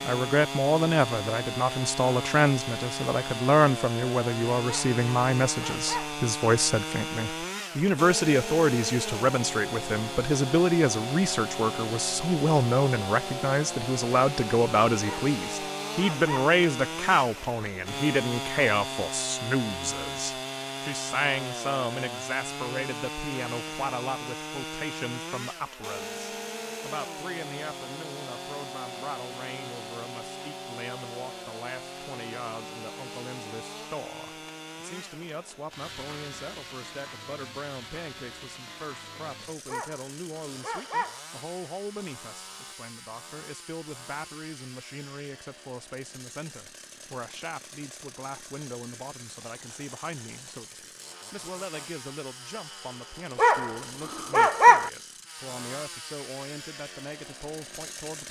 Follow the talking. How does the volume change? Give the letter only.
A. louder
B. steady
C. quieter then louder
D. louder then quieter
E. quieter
E.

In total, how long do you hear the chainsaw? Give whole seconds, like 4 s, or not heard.
58 s.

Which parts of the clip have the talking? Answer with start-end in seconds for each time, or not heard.
0.0-58.2.